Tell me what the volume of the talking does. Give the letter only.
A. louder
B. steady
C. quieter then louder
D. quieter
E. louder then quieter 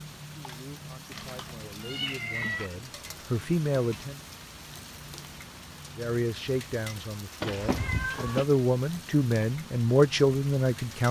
A.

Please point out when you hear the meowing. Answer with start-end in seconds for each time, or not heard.
1.1-2.7, 7.4-8.4.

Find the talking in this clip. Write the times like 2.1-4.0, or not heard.
0.2-4.2, 6.0-11.0.